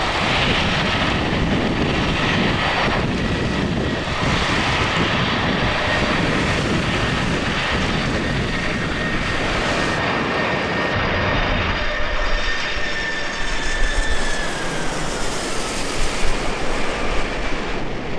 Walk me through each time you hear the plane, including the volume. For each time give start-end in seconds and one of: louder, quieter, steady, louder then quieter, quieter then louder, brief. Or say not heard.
0.0-18.1 quieter.